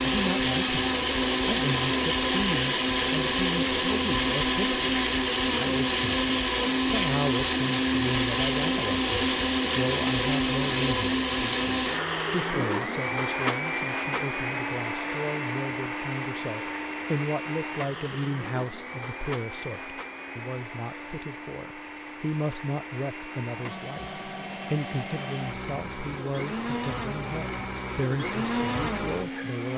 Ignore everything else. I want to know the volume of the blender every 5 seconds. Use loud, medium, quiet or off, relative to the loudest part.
loud, loud, loud, medium, quiet, medium.